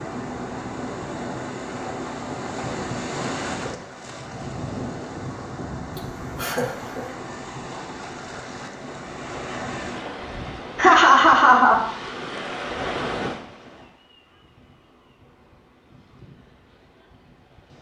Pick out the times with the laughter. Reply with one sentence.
You can hear the laughter from 6.0 to 7.0 s and from 10.8 to 11.8 s.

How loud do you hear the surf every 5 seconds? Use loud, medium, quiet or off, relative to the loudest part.
loud, loud, loud, quiet.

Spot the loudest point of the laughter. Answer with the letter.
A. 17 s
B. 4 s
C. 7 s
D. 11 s
D.